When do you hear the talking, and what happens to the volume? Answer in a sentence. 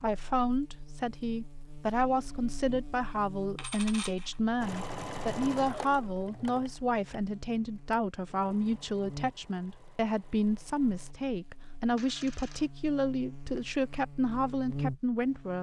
You can hear the talking from 0.0 to 15.5 s, at a steady volume.